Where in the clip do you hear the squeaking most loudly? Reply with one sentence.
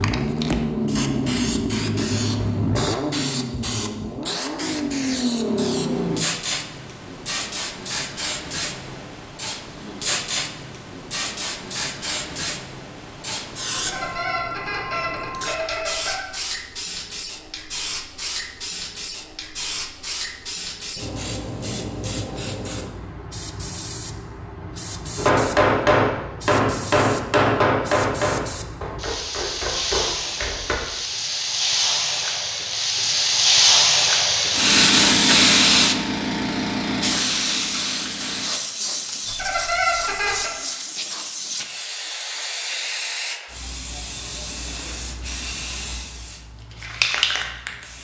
The loudest moment of the squeaking is at 40 seconds.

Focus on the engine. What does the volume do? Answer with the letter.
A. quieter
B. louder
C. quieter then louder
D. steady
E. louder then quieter
C.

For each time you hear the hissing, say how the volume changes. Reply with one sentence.
You can hear the hissing from 0.0 to 47.9 s, getting louder then quieter.